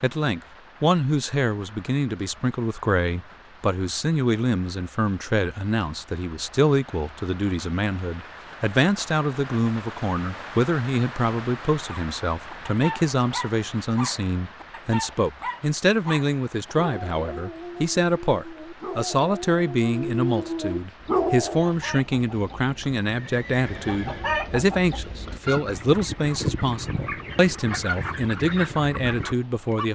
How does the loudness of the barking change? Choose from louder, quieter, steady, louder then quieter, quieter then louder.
louder.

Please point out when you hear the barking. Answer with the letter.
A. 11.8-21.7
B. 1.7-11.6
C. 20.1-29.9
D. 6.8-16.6
A.